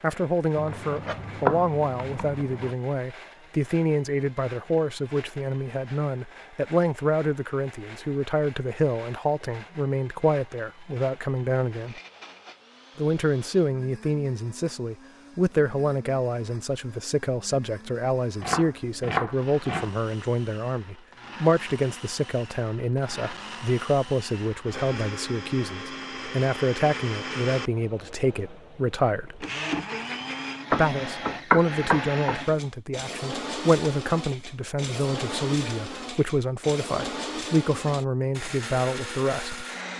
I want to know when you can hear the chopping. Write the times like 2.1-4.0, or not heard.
0.6-2.8, 18.4-19.9, 30.7-32.5.